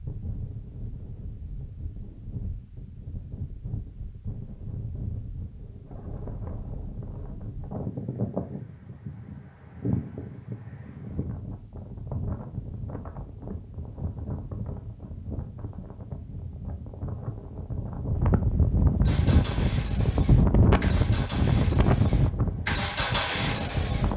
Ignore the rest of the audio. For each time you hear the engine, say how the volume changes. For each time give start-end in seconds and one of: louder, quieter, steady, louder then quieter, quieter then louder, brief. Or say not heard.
19.1-24.1 louder.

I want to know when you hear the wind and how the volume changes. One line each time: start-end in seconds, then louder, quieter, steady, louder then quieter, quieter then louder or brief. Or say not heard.
0.0-24.1 louder.